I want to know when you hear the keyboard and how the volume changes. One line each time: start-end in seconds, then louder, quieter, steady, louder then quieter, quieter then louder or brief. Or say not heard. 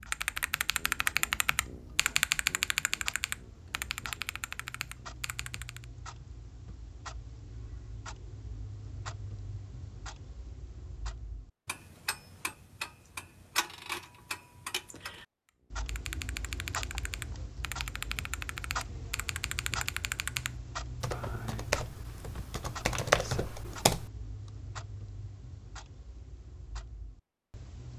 0.0-5.8 quieter
15.8-24.1 louder.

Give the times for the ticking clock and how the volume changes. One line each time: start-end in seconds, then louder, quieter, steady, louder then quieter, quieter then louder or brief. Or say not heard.
0.0-27.9 louder then quieter.